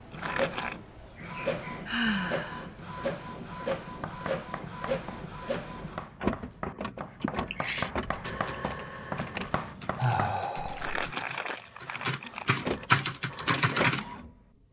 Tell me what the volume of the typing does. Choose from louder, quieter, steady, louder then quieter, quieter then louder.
louder.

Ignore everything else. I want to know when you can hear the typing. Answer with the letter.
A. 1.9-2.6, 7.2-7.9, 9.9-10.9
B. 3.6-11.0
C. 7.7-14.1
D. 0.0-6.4
C.